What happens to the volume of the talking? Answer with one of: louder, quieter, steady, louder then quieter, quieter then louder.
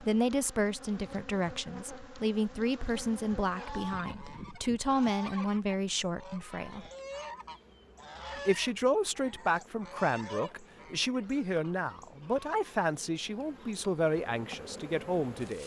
steady.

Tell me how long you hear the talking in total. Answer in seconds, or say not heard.
14 s.